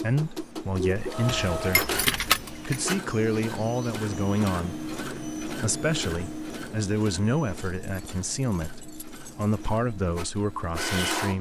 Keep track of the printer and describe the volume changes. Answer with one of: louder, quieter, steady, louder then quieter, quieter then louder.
quieter.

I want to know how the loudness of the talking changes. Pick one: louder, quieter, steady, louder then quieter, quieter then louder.
steady.